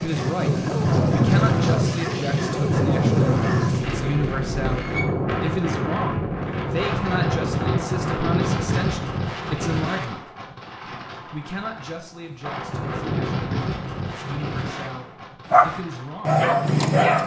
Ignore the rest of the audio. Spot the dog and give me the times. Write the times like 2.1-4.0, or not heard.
0.0-3.8, 15.5-17.2.